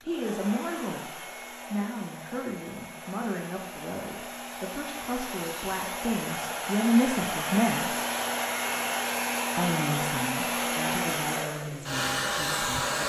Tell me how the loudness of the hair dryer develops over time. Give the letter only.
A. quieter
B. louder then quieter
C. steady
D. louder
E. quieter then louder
D.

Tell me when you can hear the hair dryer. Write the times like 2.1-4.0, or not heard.
0.0-13.0.